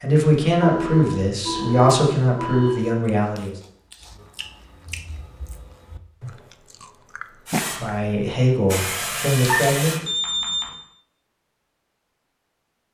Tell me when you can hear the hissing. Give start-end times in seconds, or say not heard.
7.5-10.0.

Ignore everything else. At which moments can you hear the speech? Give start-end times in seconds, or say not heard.
0.0-3.5, 7.6-10.1.